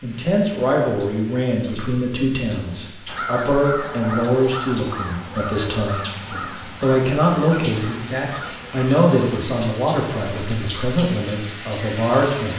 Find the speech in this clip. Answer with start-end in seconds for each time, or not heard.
0.0-12.5.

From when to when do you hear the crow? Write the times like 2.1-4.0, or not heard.
3.0-9.5.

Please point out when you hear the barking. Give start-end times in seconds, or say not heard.
not heard.